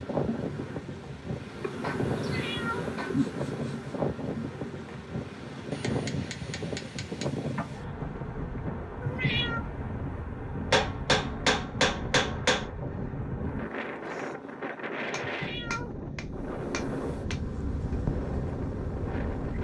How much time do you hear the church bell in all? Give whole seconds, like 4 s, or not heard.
not heard.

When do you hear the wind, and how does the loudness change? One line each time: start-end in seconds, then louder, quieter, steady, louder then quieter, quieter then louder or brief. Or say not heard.
0.0-19.6 steady.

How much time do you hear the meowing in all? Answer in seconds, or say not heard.
3 s.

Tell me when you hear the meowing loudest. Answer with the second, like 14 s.
9 s.